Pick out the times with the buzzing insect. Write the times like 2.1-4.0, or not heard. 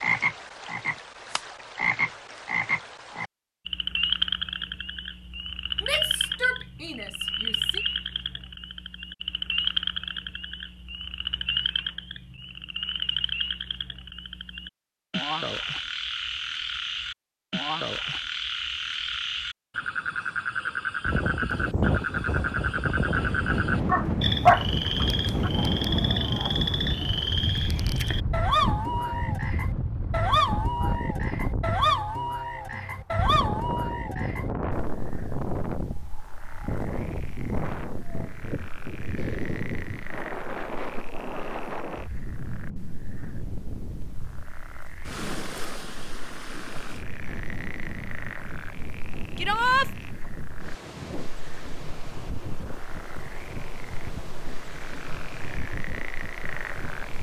not heard.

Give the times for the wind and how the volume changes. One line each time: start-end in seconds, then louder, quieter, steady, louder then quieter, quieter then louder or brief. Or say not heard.
21.1-57.1 quieter.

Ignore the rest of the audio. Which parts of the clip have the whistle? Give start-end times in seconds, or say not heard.
not heard.